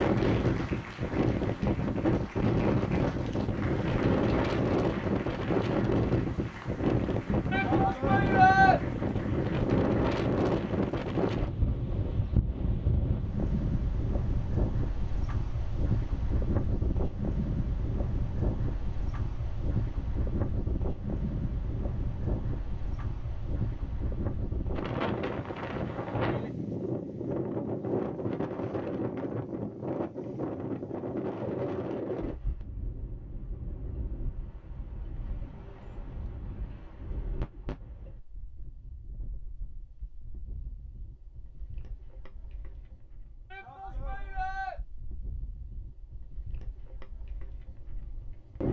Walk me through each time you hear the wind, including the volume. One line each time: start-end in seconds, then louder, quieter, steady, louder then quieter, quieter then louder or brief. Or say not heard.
0.0-48.6 quieter.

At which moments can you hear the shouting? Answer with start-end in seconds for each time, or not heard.
7.5-8.8, 43.5-44.8.